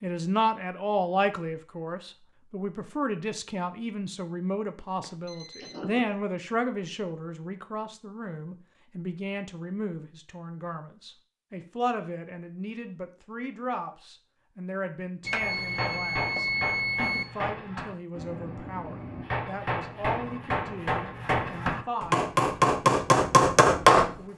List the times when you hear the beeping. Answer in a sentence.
The beeping can be heard from 5.0 to 6.0 s and from 15.2 to 17.2 s.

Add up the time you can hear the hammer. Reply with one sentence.
The hammer can be heard for 9 seconds in total.